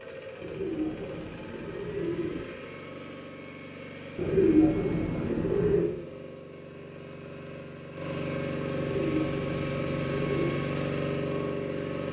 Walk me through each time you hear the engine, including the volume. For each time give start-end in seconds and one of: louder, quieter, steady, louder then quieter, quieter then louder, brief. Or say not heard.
0.0-12.0 louder.